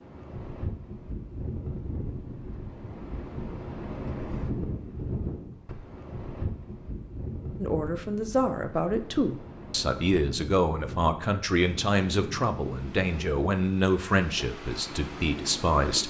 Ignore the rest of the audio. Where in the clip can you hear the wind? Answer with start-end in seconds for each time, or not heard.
0.0-16.0.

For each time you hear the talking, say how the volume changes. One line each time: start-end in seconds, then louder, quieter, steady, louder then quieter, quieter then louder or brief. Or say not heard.
7.6-16.0 steady.